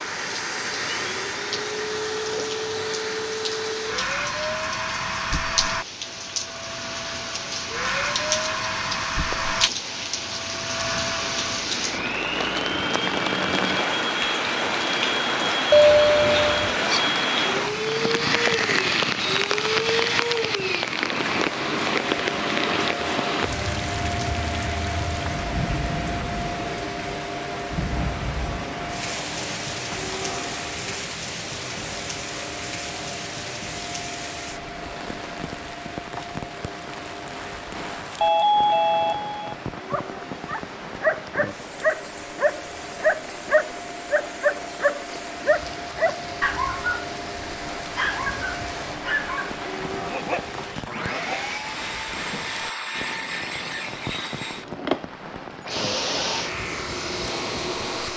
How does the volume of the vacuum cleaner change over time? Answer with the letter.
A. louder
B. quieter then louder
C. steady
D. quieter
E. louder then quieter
B.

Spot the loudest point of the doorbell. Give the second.
16 s.